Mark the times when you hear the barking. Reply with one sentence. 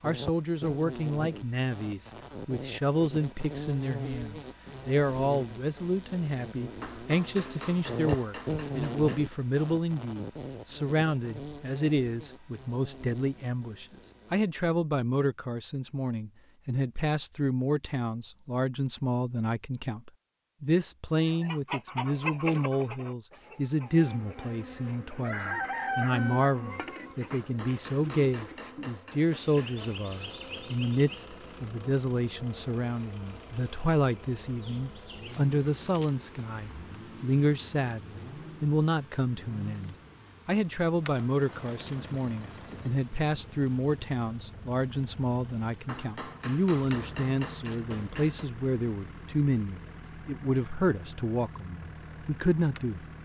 You can't hear the barking here.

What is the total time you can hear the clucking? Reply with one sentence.
The clucking can be heard for 6 seconds in total.